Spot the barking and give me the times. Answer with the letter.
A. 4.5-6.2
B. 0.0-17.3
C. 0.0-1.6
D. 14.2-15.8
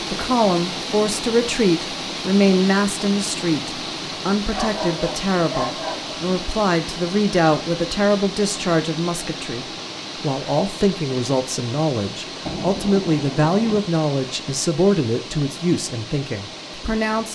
A.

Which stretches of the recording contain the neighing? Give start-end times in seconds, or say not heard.
not heard.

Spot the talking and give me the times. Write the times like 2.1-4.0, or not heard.
0.0-17.3.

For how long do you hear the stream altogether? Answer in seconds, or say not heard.
17 s.